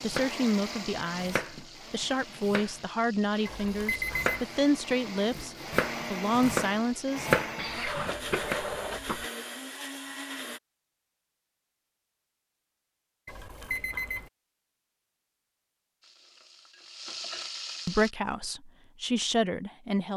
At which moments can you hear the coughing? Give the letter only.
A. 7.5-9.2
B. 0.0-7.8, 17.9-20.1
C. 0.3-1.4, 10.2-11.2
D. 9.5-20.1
A.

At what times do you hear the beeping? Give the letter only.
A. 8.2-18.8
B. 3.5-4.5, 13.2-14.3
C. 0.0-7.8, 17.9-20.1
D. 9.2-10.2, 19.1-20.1
B.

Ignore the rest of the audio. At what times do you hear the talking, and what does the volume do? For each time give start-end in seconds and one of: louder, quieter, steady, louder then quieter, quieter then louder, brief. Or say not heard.
0.0-7.8 steady
17.9-20.1 brief.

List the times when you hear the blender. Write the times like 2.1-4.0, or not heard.
0.0-10.6.